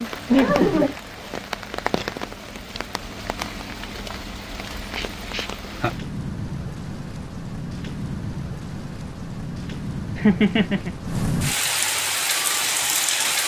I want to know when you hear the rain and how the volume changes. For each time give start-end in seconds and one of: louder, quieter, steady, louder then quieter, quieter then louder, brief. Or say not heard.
0.0-13.4 louder.